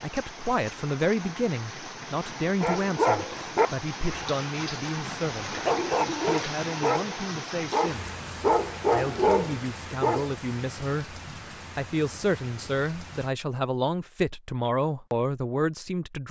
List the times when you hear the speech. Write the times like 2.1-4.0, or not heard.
0.0-5.6, 6.2-8.2, 8.8-16.2.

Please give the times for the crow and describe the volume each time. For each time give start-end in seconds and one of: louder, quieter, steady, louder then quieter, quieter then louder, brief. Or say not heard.
not heard.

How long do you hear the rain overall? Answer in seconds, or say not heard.
13 s.